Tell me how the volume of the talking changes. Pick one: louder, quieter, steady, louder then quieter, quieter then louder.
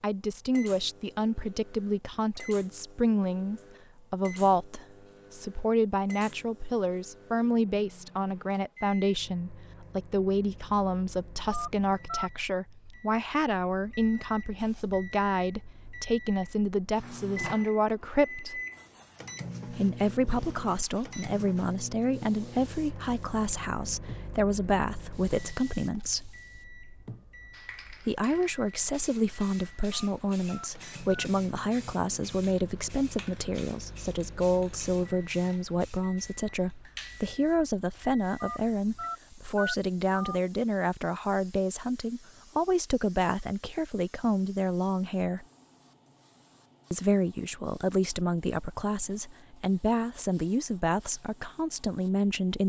steady.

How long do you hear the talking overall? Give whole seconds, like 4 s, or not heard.
48 s.